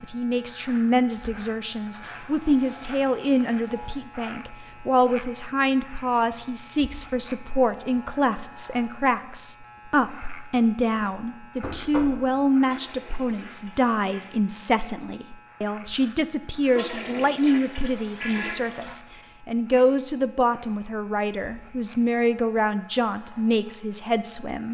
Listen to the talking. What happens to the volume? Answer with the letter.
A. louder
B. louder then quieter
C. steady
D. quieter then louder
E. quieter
C.